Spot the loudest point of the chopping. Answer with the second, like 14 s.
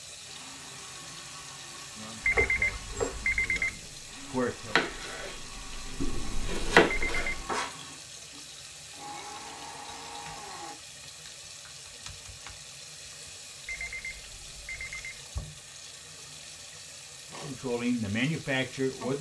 7 s.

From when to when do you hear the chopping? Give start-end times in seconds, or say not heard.
2.3-7.7.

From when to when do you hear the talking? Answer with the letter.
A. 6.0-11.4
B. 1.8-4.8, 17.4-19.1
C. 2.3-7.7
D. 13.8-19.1
B.